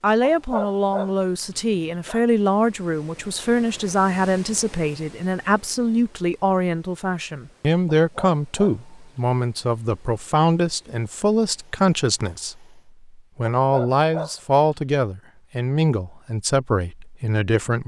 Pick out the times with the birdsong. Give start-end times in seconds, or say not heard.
not heard.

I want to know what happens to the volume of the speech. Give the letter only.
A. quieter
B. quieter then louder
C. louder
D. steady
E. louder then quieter
D.